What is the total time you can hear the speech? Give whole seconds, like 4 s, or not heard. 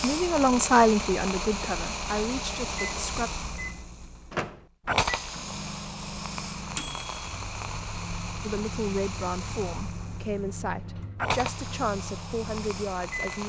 8 s.